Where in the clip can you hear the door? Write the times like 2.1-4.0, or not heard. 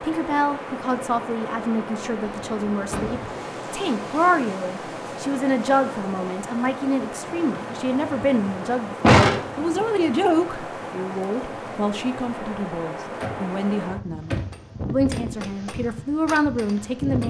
2.0-3.4, 9.0-9.8, 13.2-14.7.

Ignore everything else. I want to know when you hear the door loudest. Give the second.
9 s.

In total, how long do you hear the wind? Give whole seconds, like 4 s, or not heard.
17 s.